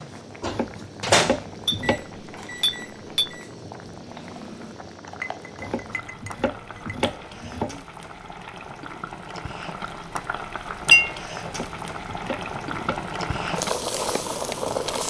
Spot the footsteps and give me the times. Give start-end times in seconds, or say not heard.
not heard.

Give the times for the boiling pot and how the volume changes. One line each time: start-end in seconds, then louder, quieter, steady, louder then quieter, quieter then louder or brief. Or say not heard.
0.0-15.0 louder.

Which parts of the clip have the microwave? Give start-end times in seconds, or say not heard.
0.0-4.8.